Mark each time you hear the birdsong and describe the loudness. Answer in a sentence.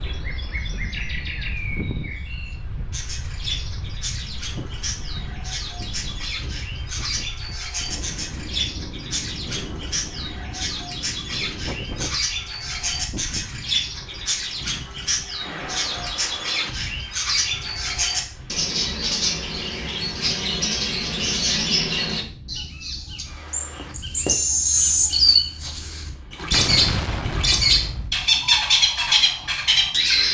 The birdsong can be heard from 0.0 to 30.2 s, getting louder.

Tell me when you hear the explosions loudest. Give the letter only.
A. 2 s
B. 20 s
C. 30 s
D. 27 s
D.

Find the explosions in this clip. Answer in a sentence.
The explosions can be heard from 26.5 to 28.2 s.